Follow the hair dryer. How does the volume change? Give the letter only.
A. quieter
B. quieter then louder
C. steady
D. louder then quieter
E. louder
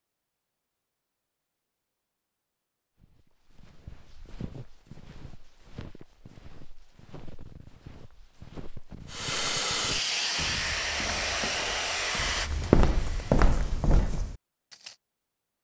A.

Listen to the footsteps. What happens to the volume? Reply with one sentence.
The loudness of the footsteps goes up.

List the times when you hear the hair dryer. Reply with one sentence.
The hair dryer can be heard from 9.1 to 13.5 s.